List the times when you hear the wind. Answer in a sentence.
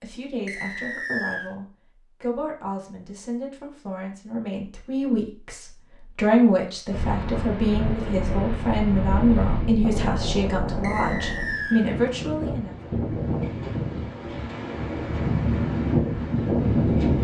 The wind can be heard from 6.9 to 17.1 s.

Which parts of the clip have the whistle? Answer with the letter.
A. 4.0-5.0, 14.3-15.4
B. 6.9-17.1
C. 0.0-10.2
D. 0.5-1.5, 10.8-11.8
D.